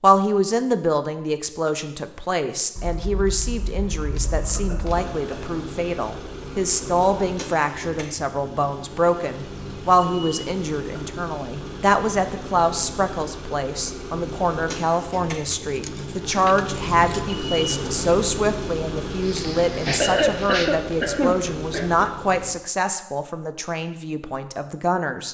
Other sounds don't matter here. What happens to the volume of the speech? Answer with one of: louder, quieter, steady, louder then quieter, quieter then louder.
steady.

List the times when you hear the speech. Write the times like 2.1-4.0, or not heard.
0.0-25.2.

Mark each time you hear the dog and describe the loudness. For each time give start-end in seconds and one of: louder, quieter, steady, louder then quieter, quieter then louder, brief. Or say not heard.
not heard.